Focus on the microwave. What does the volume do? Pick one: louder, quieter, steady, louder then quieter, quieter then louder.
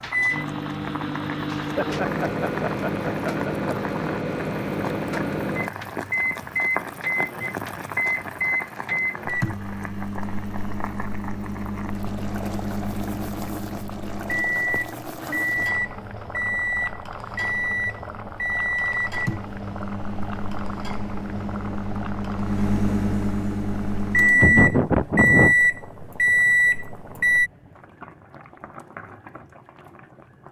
louder.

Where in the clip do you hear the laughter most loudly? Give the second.
25 s.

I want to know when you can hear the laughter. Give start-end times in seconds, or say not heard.
1.6-3.8, 14.6-15.4, 24.2-25.6.